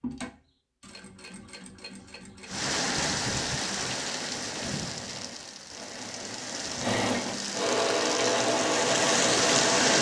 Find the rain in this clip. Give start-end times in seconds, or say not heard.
2.5-9.9.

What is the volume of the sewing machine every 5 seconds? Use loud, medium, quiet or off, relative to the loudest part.
quiet, loud.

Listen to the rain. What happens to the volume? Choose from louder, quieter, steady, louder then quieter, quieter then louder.
quieter then louder.